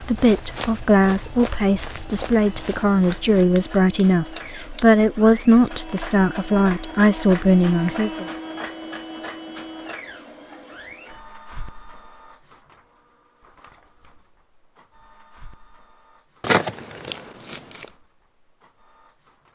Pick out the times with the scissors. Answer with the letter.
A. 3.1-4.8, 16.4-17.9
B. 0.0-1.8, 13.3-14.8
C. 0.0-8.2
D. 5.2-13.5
A.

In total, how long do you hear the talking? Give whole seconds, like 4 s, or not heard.
8 s.